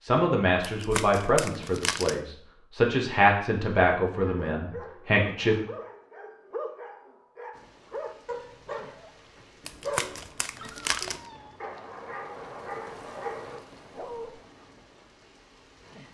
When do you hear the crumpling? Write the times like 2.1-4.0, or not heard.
0.6-2.2, 9.7-11.2.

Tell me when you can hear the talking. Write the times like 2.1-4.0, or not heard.
0.0-5.5.